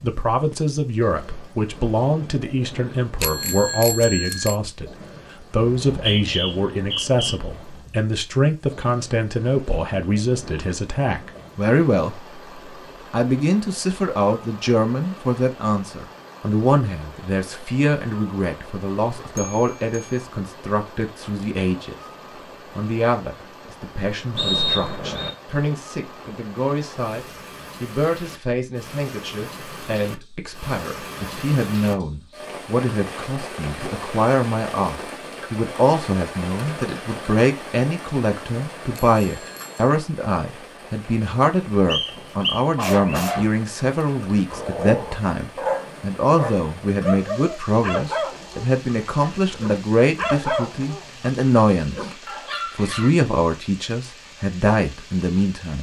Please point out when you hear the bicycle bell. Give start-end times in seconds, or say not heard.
3.2-4.5, 19.4-20.1, 39.0-39.9.